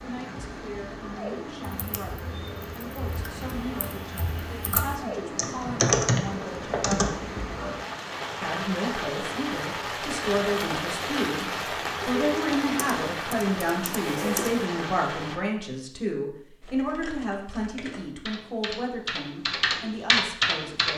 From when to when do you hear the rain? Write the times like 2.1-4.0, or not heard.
0.0-15.4.